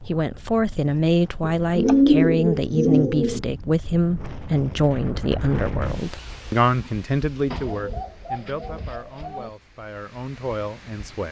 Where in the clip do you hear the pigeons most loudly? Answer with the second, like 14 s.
2 s.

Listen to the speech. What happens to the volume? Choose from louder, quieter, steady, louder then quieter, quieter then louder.
quieter.